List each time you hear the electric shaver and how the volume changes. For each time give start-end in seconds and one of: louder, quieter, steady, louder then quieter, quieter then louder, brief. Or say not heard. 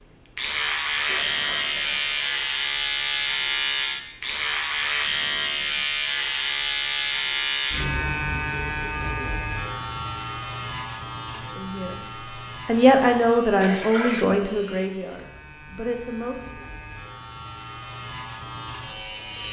0.3-19.4 quieter.